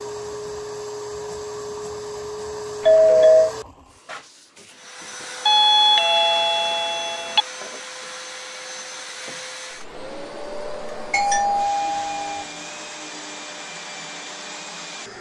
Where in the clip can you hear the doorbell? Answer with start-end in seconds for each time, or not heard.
2.9-3.5, 5.5-7.5, 11.1-12.4.